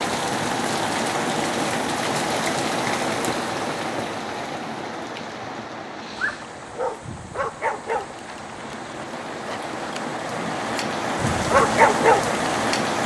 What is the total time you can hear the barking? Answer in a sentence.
You can hear the barking for 6 seconds altogether.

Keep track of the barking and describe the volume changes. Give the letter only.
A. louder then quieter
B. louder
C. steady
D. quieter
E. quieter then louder
E.